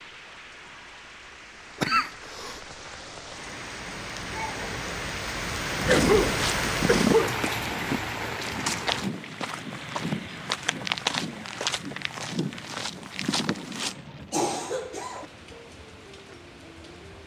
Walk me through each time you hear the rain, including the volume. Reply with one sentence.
You can hear the rain from 0.0 to 17.2 s, getting louder then quieter.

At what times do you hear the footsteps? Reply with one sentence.
The footsteps can be heard from 5.7 to 13.9 s.